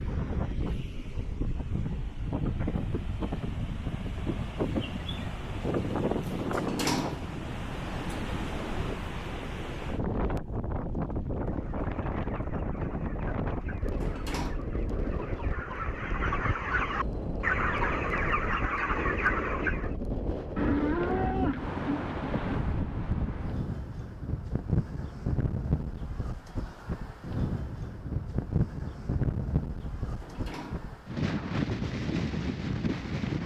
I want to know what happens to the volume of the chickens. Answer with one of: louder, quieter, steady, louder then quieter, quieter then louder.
louder.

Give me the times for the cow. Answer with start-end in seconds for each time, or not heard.
20.6-22.6.